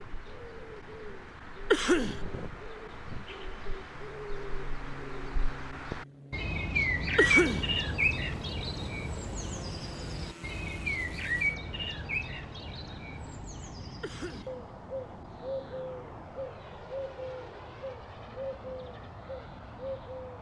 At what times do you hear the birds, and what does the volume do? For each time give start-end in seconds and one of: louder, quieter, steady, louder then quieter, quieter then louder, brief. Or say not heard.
0.0-20.3 louder then quieter.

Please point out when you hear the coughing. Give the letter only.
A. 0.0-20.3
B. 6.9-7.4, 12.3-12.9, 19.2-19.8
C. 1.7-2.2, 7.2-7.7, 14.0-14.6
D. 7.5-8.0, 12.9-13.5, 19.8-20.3
C.